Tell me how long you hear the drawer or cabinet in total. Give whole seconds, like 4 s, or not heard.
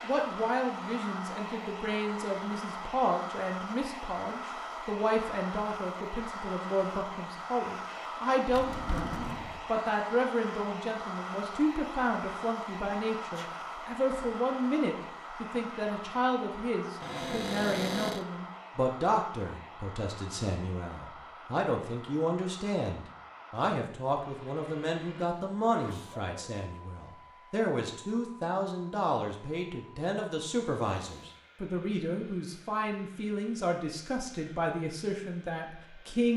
3 s.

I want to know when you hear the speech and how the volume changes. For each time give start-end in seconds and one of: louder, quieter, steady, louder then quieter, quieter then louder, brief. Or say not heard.
0.0-36.3 steady.